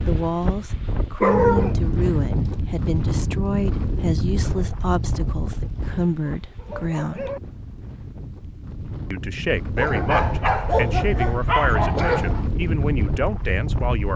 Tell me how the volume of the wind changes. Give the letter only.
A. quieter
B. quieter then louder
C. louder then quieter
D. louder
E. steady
B.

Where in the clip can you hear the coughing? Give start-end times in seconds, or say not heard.
not heard.